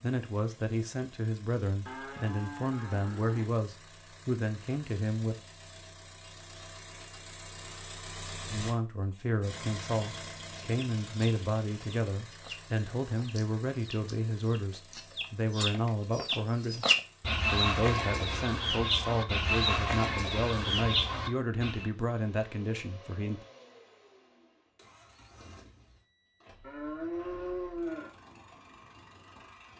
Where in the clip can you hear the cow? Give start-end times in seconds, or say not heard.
1.9-3.5, 26.6-28.1.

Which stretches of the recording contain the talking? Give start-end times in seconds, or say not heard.
0.0-5.3, 8.5-16.9, 17.5-23.4.